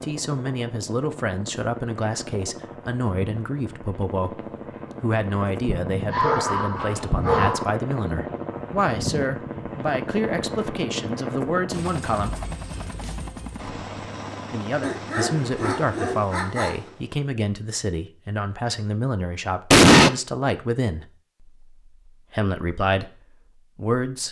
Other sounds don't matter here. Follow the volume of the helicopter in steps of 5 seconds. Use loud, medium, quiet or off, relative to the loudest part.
medium, loud, loud, medium, off.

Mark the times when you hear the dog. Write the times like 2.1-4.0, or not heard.
6.1-7.8, 14.8-16.9.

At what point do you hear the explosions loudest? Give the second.
20 s.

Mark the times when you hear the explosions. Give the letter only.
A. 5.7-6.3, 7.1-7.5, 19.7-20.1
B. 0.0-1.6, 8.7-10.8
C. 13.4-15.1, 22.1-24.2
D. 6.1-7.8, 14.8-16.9
A.